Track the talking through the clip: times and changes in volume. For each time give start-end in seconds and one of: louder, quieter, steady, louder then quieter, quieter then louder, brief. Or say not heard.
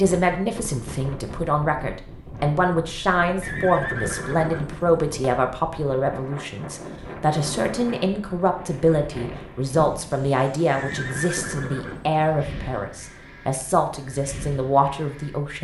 0.0-15.5 steady.